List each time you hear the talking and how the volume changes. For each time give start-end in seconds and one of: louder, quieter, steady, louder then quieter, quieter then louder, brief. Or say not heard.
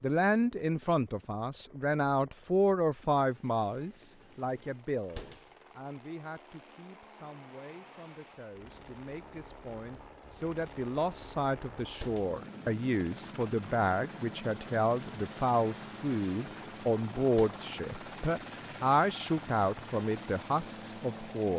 0.0-21.5 quieter then louder.